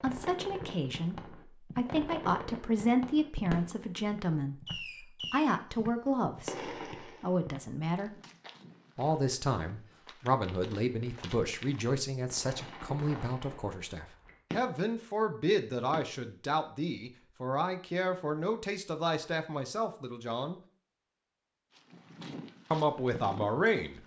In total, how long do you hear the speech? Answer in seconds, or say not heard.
21 s.